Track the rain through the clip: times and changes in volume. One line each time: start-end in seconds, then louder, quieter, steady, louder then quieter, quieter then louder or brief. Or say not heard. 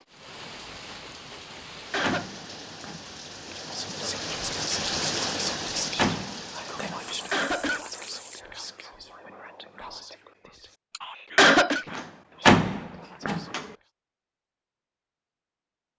0.0-8.4 louder then quieter.